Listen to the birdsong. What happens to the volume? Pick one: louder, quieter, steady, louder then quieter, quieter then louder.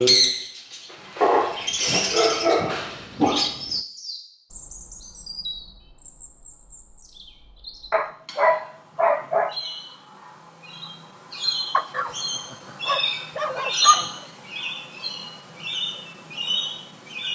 quieter then louder.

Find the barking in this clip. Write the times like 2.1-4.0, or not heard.
1.2-3.7, 7.9-9.6, 11.7-14.1.